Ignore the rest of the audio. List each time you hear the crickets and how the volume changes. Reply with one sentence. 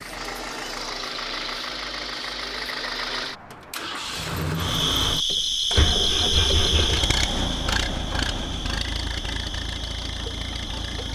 You can hear the crickets from 4.5 to 11.1 s, getting quieter.